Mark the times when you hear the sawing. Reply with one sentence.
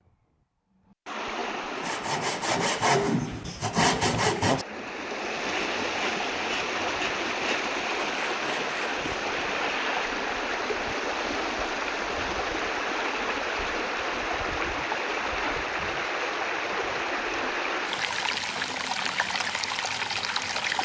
You can hear the sawing from 1.8 to 9.0 s.